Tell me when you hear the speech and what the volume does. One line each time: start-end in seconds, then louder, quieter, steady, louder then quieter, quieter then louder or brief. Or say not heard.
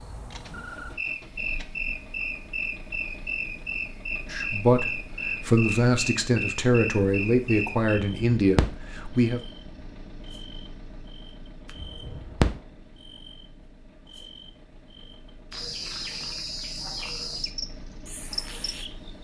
4.3-9.4 steady.